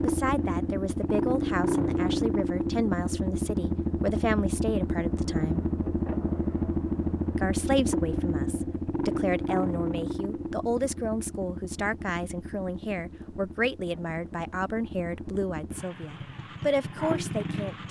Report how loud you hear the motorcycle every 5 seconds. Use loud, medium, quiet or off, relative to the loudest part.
loud, loud, medium, medium.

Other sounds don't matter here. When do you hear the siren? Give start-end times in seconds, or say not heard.
not heard.